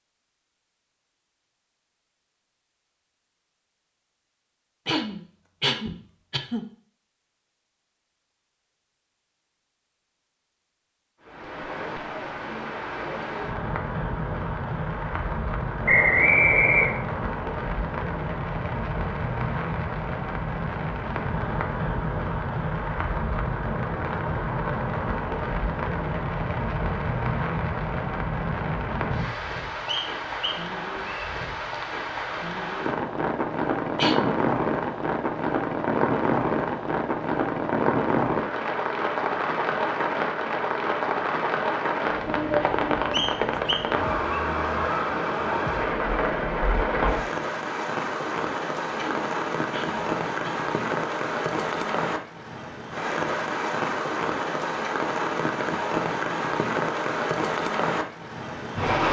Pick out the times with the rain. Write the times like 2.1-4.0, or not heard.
11.2-59.0.